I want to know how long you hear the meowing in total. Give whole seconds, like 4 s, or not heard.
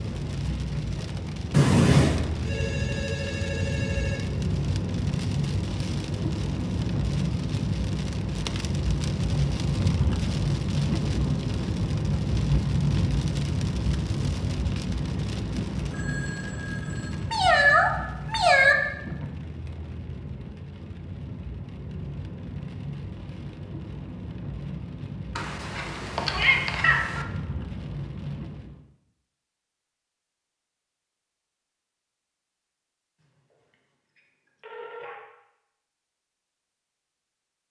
4 s.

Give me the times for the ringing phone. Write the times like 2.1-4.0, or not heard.
2.3-4.2, 15.8-17.2, 33.2-35.1.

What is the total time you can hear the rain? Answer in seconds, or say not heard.
29 s.